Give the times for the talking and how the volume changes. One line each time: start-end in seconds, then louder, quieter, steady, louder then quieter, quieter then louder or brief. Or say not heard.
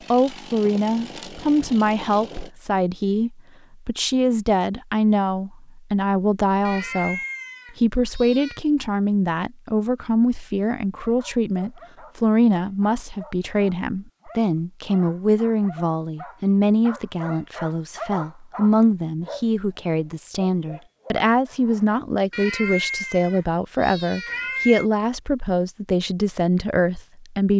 0.1-27.5 steady.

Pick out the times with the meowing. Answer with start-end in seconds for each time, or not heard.
6.7-8.6, 22.3-24.9.